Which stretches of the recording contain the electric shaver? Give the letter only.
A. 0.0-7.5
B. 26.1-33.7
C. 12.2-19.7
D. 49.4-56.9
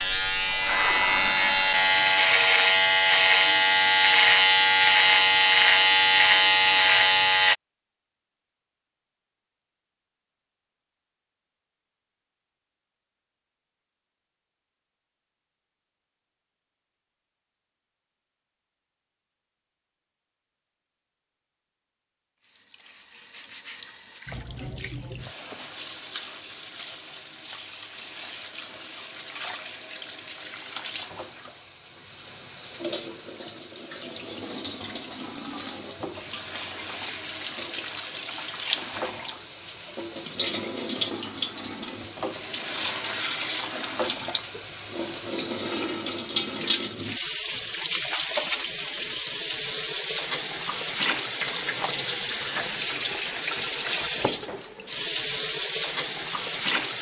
A.